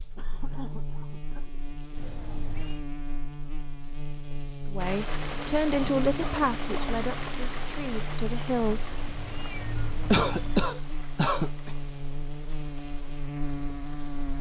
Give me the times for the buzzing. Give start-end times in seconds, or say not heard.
0.0-14.3.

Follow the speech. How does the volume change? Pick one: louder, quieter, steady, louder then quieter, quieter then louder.
quieter then louder.